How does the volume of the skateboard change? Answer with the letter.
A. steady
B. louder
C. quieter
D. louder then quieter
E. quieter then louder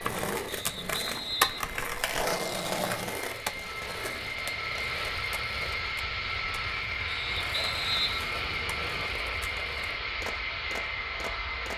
C.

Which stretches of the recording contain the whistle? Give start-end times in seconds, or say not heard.
0.5-1.8, 7.0-9.1.